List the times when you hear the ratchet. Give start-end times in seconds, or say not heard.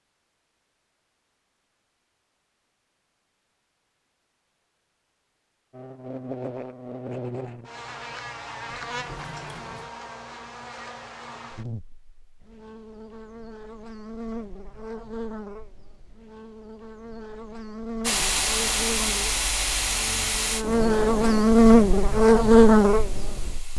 not heard.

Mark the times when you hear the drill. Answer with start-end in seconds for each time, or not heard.
not heard.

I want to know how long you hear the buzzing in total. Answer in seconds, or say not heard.
18 s.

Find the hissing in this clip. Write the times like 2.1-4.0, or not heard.
18.0-23.7.